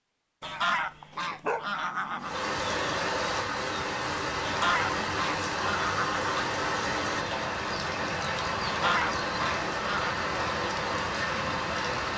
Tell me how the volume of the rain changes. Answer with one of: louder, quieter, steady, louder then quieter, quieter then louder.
steady.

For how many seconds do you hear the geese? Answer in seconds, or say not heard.
6 s.